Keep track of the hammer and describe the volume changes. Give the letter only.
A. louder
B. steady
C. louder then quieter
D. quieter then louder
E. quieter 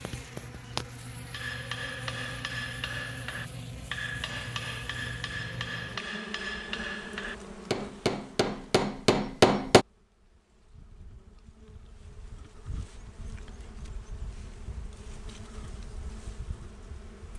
A.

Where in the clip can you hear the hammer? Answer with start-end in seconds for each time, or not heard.
1.3-9.8.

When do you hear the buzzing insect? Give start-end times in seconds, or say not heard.
0.0-17.3.